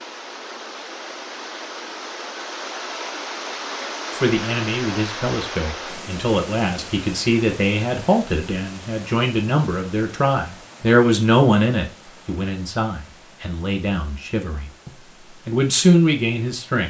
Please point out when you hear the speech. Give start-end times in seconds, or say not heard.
4.2-16.8.